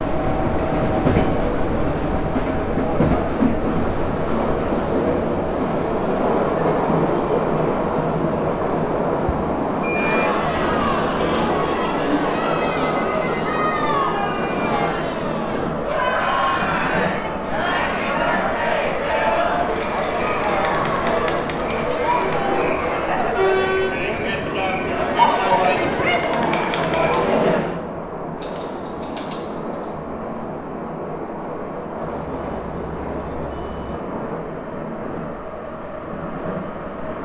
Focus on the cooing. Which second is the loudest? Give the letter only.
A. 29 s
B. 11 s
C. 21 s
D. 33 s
B.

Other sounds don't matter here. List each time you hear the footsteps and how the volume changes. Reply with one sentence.
The footsteps can't be heard in this clip.